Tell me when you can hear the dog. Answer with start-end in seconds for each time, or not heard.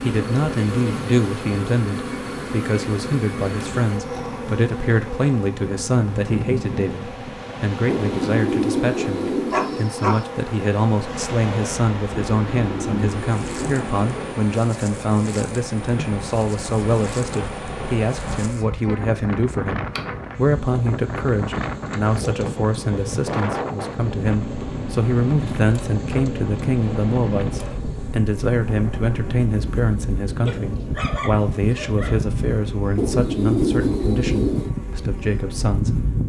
9.5-10.2, 30.4-32.2.